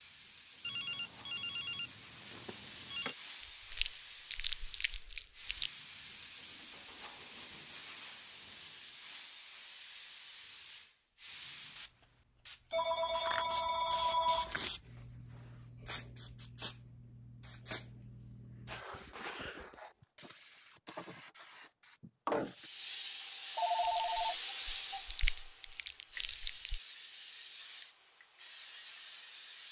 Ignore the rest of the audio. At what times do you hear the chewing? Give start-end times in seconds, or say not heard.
3.4-5.7, 23.9-26.8.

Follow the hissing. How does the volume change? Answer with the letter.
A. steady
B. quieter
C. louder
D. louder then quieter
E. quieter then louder
C.